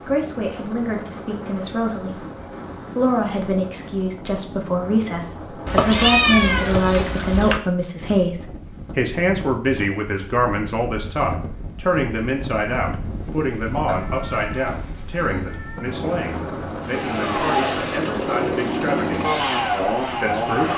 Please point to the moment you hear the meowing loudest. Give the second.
6 s.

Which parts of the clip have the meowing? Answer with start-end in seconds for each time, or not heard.
5.7-7.6, 13.8-15.9.